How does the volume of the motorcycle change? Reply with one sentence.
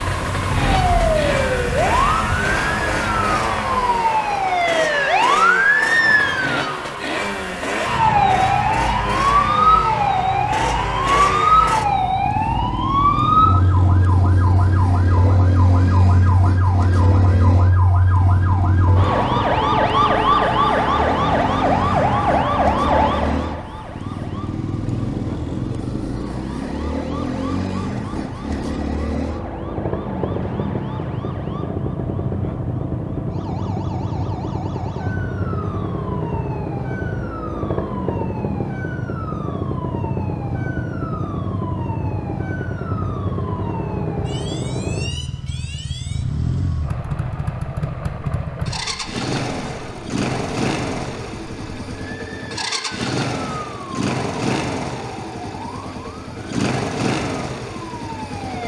The loudness of the motorcycle stays about the same.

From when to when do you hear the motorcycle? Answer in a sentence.
You can hear the motorcycle from 0.0 to 58.6 s.